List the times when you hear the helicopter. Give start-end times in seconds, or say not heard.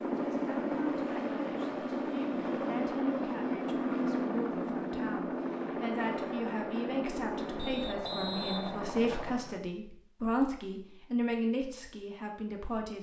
0.0-9.4.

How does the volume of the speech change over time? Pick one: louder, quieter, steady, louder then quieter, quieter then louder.
louder.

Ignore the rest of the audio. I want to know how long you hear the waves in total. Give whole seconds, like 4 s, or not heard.
not heard.